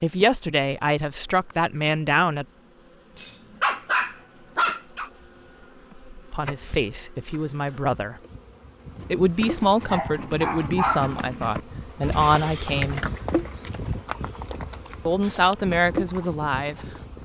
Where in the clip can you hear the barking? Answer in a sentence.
The barking can be heard from 3.1 to 5.1 s and from 9.4 to 11.2 s.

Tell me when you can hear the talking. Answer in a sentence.
You can hear the talking from 0.0 to 2.5 s, from 6.3 to 8.2 s, from 9.1 to 13.0 s and from 15.1 to 17.2 s.